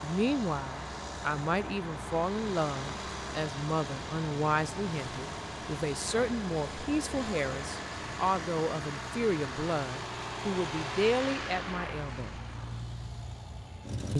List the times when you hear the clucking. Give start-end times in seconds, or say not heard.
not heard.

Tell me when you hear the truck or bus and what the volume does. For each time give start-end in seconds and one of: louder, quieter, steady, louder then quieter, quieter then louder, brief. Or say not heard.
0.0-14.1 steady.